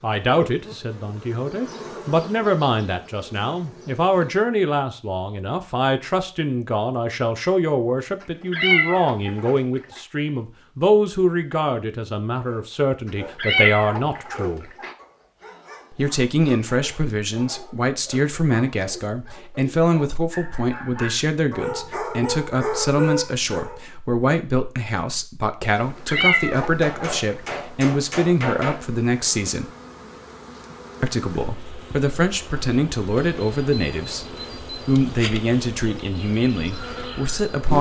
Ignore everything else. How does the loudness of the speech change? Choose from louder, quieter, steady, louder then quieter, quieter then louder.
steady.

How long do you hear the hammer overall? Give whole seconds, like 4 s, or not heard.
2 s.